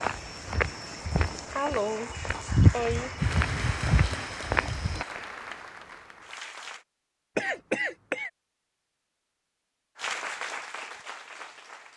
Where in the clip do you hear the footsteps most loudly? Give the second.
3 s.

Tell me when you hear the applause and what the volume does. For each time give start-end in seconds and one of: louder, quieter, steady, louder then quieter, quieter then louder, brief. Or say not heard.
0.0-6.8 louder then quieter
9.9-11.9 brief.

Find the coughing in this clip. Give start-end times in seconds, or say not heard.
0.9-3.2, 7.3-8.3.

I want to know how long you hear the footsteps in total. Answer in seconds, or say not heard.
5 s.